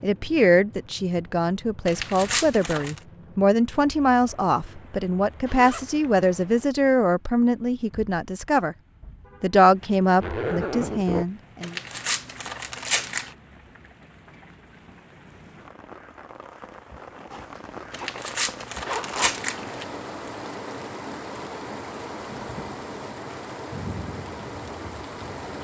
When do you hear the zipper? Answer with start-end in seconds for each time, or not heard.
5.5-6.3, 10.2-11.2, 17.6-19.4.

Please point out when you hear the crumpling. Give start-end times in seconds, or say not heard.
1.9-3.0, 11.6-13.3, 17.9-19.9.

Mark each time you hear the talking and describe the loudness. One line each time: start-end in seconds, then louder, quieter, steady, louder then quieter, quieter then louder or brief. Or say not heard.
0.0-8.8 steady
9.4-11.8 brief.